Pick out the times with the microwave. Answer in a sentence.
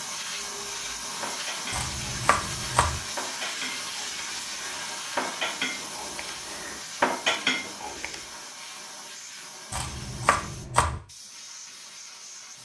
The microwave can't be heard in this clip.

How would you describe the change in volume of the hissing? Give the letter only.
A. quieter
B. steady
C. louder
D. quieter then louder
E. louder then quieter
A.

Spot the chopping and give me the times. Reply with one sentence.
The chopping can be heard from 1.7 to 3.0 s and from 9.7 to 11.0 s.